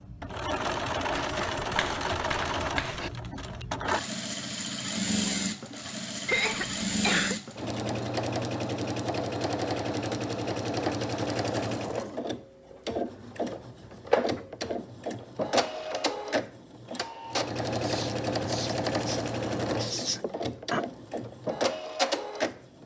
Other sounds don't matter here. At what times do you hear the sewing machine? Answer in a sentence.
You can hear the sewing machine from 0.0 to 22.8 s.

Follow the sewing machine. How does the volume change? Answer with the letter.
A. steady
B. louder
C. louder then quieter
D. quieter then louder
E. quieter
A.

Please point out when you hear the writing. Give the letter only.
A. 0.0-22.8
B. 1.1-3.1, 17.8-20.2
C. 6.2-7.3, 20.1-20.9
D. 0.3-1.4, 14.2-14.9
B.